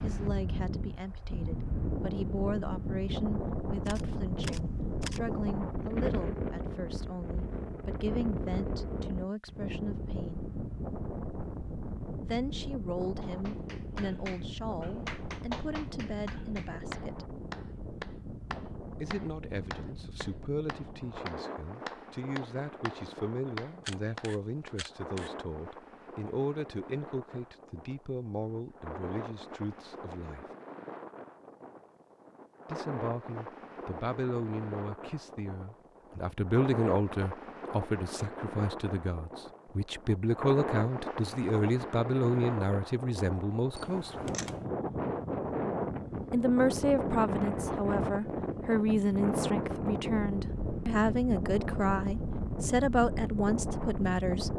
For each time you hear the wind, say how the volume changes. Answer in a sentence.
You can hear the wind from 0.0 to 54.5 s, getting quieter then louder.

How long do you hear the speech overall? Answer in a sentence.
The speech can be heard for 47 seconds in total.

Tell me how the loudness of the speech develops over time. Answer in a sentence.
The loudness of the speech goes up.